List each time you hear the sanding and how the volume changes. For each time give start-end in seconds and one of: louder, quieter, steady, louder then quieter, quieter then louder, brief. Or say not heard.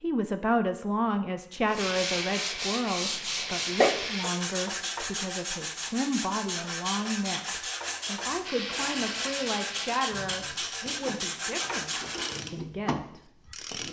1.6-12.4 steady.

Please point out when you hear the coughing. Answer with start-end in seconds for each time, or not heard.
3.0-4.0.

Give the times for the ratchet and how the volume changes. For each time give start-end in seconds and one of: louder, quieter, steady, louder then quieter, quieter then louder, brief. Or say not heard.
1.8-4.2 brief
8.4-13.8 quieter then louder.